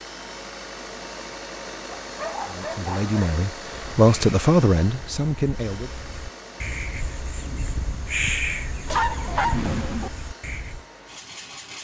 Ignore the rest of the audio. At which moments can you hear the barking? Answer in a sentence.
The barking can be heard from 1.9 to 3.2 s and from 8.8 to 10.1 s.